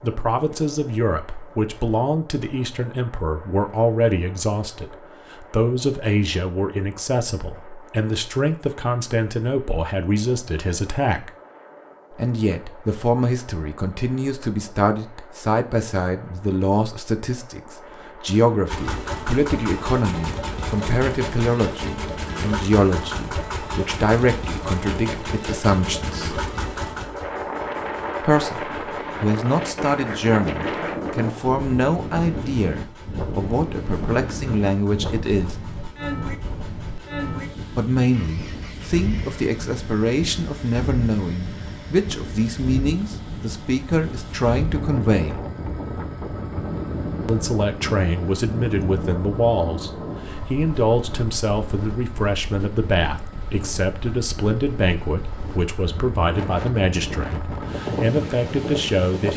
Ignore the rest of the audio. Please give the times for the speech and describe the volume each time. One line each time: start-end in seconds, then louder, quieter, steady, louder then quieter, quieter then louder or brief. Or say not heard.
0.0-11.3 steady
12.1-26.4 steady
28.2-35.5 steady
37.8-45.4 steady
47.2-59.3 steady.